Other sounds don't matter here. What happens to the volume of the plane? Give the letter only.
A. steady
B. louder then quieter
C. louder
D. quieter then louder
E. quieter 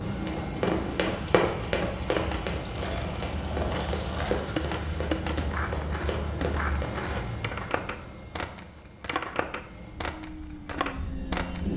E.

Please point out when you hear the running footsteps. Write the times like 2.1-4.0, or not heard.
0.1-7.2.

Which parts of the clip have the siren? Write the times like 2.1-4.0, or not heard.
not heard.